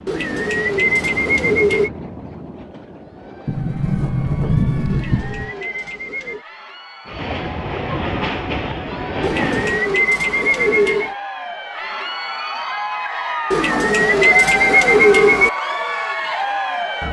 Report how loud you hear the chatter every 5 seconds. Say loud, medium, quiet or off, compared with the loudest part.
quiet, quiet, loud, loud.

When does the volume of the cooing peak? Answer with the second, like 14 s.
15 s.